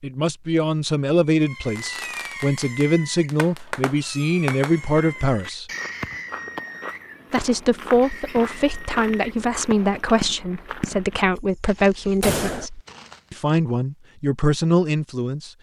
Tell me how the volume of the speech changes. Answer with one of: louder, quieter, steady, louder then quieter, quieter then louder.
steady.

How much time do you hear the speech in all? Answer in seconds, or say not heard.
14 s.